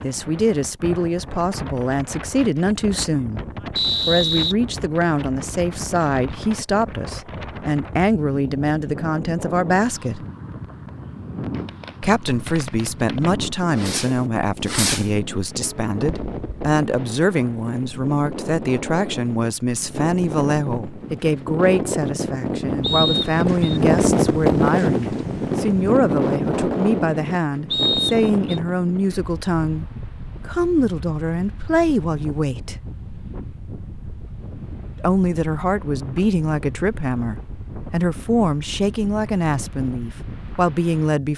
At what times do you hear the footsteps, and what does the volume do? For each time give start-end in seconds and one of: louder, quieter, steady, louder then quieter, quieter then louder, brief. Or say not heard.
not heard.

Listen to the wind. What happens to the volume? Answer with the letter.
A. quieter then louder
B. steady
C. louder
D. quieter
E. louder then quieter
E.